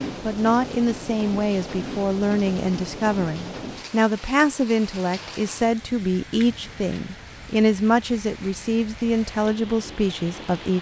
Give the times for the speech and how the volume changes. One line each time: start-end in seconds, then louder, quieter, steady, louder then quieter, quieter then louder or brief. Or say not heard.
0.2-10.7 steady.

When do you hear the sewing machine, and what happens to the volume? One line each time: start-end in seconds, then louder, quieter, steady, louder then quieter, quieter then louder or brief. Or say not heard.
not heard.